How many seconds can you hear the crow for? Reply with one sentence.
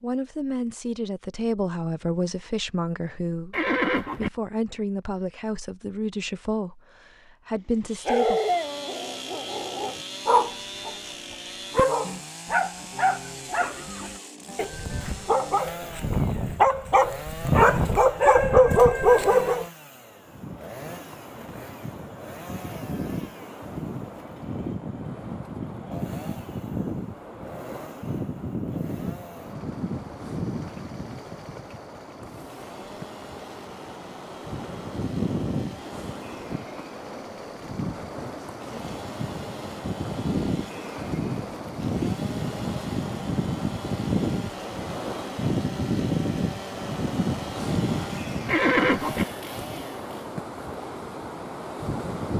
You can't hear the crow here.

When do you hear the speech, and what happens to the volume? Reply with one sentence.
You can hear the speech from 0.0 to 8.4 s, at a steady volume.